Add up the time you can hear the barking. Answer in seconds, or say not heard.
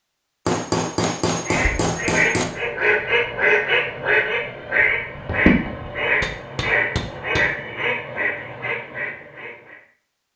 not heard.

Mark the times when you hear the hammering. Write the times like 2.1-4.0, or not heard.
0.5-2.5, 6.2-7.5.